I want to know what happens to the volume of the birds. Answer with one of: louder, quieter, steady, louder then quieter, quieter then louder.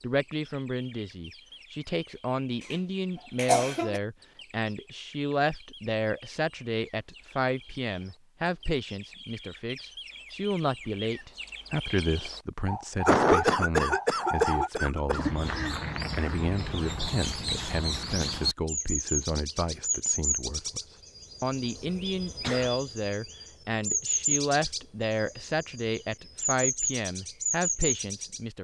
louder.